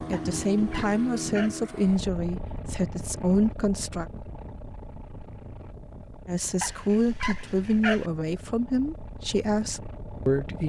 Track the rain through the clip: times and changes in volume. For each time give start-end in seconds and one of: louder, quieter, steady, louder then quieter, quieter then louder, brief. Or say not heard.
not heard.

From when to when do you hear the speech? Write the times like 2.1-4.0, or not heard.
0.1-4.0, 6.2-10.6.